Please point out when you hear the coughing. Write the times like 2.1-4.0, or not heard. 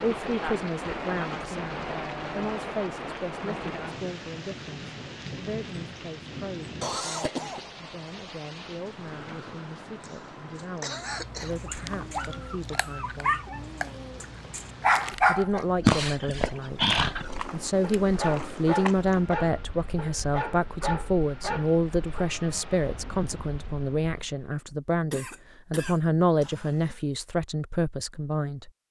6.8-7.8, 10.0-11.6, 25.1-27.0.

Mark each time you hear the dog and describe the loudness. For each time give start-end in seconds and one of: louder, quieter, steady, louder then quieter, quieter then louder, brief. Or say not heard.
11.6-13.6 brief
14.2-22.3 quieter.